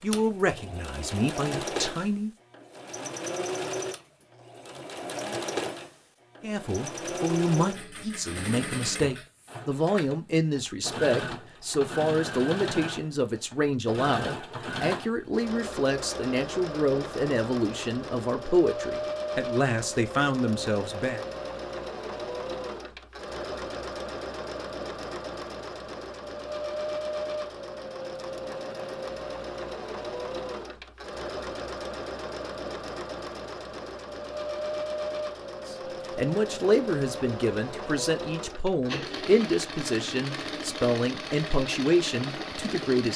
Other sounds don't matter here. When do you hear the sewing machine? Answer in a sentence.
You can hear the sewing machine from 0.0 to 43.1 s.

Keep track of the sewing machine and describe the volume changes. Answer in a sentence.
The loudness of the sewing machine stays about the same.